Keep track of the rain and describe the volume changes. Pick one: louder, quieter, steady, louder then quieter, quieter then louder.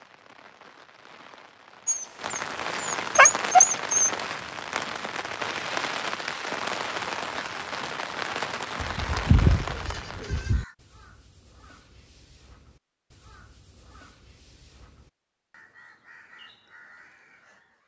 louder.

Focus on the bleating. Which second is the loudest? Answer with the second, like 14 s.
9 s.